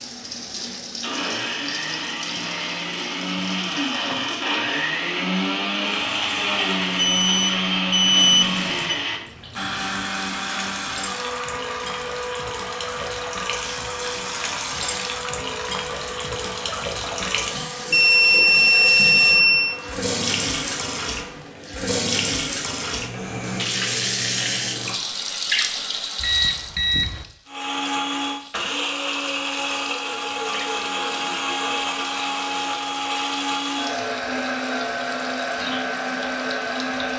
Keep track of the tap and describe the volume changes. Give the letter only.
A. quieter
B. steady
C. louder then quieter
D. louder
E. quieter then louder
C.